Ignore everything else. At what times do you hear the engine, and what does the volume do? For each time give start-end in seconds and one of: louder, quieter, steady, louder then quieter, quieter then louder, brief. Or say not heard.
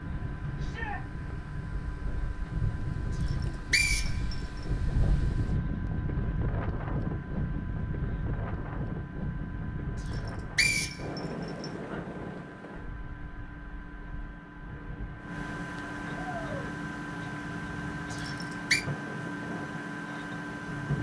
0.0-20.9 louder.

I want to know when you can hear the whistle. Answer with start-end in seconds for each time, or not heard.
3.2-4.3, 10.1-11.7, 18.1-18.9.